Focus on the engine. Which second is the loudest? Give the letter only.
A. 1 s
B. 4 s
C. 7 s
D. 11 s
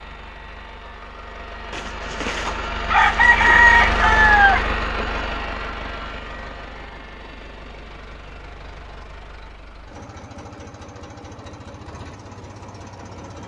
B.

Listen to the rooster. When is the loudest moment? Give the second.
4 s.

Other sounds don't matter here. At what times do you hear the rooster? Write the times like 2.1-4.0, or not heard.
1.7-5.2.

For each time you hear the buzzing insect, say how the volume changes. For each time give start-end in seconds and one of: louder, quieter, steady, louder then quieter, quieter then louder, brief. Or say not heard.
not heard.